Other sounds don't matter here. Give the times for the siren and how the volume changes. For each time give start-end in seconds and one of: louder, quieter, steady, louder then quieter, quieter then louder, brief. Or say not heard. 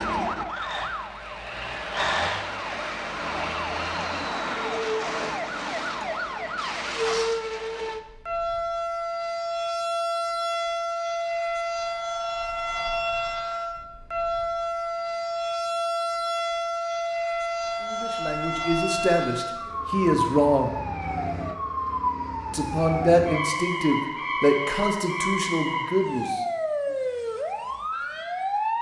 0.0-28.7 steady.